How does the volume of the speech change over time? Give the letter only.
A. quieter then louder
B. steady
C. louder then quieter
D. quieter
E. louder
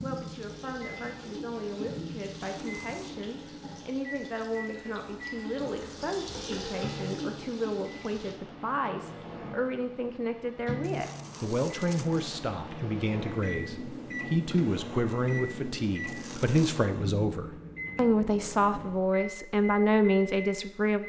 E.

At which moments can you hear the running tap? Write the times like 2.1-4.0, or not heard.
0.0-8.4.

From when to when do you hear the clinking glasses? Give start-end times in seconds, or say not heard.
not heard.